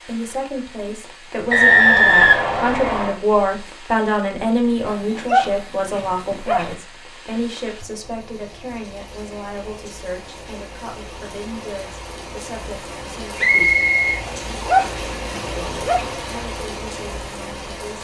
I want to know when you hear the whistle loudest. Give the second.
2 s.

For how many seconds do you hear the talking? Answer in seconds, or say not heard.
16 s.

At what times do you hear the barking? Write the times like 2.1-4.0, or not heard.
4.8-6.8, 14.2-16.1.